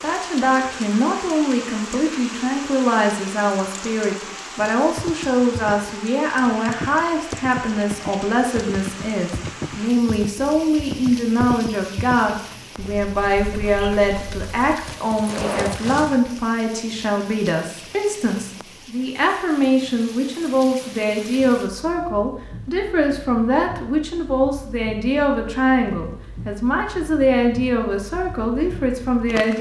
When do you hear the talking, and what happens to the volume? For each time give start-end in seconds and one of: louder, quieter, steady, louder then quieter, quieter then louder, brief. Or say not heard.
0.0-29.5 steady.